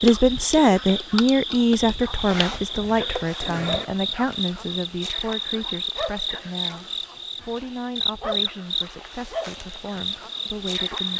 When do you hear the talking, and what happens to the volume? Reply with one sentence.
You can hear the talking from 0.0 to 11.1 s, getting quieter.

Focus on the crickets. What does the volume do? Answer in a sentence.
The loudness of the crickets stays about the same.